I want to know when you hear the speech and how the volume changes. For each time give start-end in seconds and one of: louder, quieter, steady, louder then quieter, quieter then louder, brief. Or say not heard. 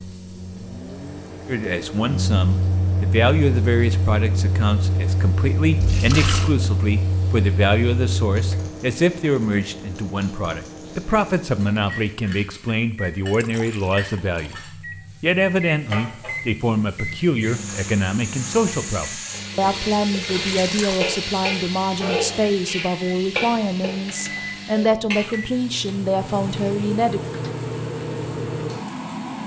1.4-27.2 steady.